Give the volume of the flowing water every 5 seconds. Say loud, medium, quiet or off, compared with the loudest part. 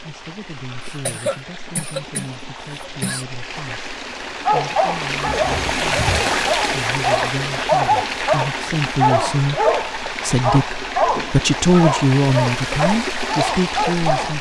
medium, loud, loud.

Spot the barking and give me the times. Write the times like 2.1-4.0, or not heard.
4.5-14.3.